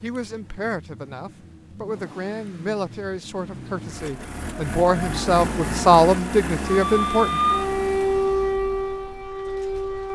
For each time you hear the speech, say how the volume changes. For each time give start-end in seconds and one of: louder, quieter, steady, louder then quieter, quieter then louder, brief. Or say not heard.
0.0-7.4 louder.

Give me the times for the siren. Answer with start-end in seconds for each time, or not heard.
6.7-10.1.